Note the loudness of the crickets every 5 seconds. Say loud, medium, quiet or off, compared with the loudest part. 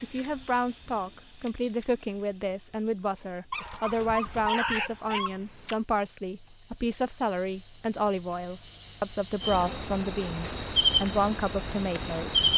medium, medium, loud.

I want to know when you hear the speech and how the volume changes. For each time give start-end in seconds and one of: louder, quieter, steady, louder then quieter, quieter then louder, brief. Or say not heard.
0.0-12.4 steady.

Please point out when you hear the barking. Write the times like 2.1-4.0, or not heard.
3.5-5.3.